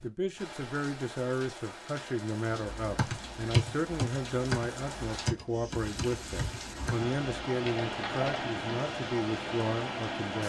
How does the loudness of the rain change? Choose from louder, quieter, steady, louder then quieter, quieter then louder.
louder.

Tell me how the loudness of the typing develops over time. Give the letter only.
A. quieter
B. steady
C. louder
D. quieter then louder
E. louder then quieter
A.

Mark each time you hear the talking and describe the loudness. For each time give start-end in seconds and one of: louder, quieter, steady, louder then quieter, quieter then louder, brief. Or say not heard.
0.0-10.4 steady.